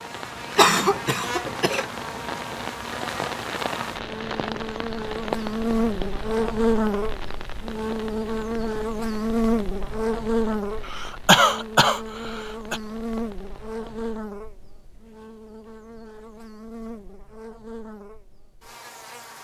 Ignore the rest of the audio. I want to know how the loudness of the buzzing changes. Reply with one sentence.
The loudness of the buzzing goes up, then down.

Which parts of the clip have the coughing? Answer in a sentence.
The coughing can be heard from 0.6 to 1.9 s and from 10.8 to 12.8 s.